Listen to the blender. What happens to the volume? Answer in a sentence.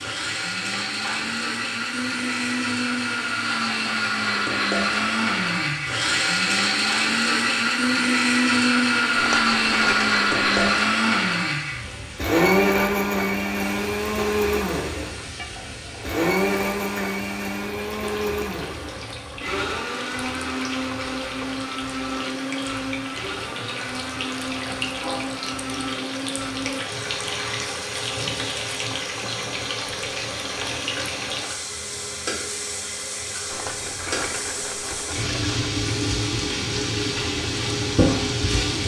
The volume of the blender goes down.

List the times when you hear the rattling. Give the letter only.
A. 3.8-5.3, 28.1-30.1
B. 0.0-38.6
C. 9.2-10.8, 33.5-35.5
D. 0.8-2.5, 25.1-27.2
C.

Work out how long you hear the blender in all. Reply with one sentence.
The blender can be heard for 39 seconds in total.